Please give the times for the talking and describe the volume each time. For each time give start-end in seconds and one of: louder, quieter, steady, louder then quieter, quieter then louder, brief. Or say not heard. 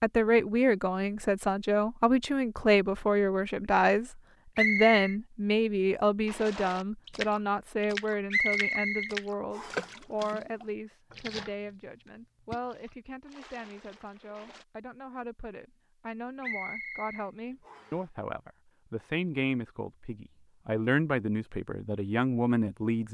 0.0-23.0 quieter then louder.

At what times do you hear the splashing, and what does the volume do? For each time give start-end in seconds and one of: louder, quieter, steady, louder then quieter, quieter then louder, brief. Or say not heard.
6.2-14.7 quieter.